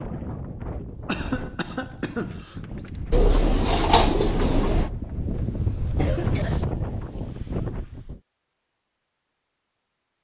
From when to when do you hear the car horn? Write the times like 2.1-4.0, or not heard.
not heard.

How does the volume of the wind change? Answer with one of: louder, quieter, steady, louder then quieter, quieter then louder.
louder.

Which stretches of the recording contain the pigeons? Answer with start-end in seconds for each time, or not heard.
3.1-4.9.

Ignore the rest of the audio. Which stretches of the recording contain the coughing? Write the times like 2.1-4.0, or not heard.
1.1-2.9, 6.0-6.7.